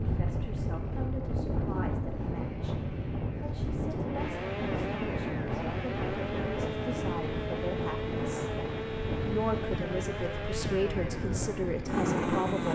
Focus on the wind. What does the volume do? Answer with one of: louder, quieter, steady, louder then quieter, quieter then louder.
steady.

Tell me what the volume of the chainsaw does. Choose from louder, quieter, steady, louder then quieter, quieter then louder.
louder.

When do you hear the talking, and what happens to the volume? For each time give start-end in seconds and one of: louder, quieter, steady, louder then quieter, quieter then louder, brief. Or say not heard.
0.0-12.6 louder.